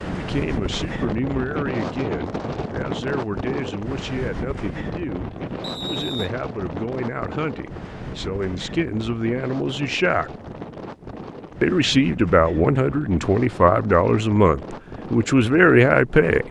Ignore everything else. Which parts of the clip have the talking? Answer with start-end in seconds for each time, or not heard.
0.0-10.3, 11.6-16.4.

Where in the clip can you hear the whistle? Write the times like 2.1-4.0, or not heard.
5.6-6.3.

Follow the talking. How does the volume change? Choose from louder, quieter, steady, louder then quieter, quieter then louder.
louder.